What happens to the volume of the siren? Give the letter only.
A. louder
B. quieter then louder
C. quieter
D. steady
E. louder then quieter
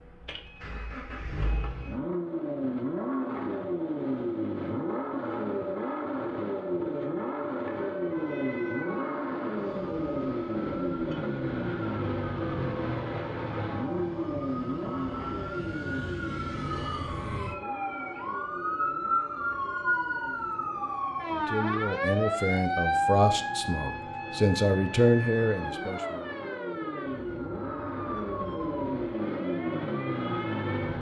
E.